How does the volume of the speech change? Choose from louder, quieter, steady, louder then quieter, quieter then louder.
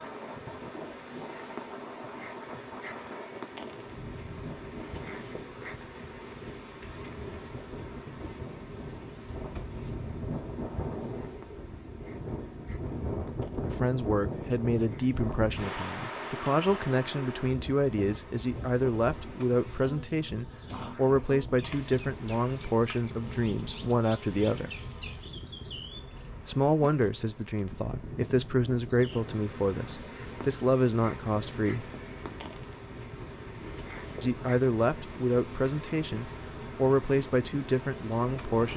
steady.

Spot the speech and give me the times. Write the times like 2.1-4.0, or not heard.
13.7-24.7, 26.4-31.9, 34.2-38.7.